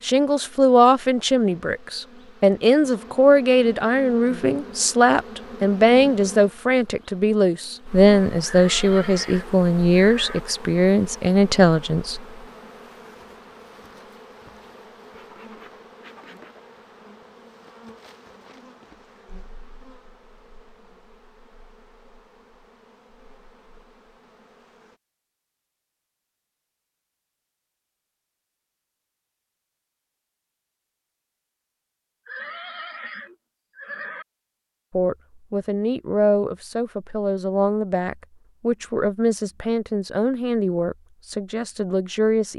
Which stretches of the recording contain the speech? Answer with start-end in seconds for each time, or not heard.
0.0-12.2, 34.9-42.5.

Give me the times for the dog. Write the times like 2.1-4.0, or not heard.
not heard.